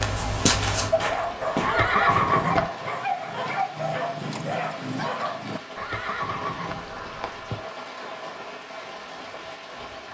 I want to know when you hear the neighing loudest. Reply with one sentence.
The volume of the neighing peaks at 2 seconds.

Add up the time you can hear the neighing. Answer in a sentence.
You can hear the neighing for 3 seconds altogether.